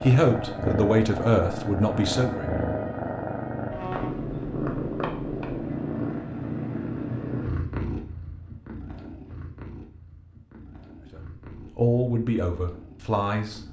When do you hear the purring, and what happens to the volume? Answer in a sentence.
The purring can be heard from 0.0 to 13.6 s, getting quieter.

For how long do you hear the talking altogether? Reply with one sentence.
You can hear the talking for 5 seconds altogether.